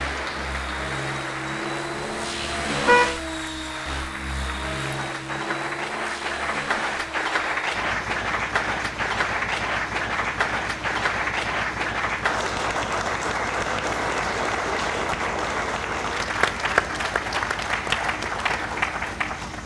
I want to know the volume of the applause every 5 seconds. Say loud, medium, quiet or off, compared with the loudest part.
medium, loud, loud, loud.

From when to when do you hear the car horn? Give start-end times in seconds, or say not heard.
1.9-3.2.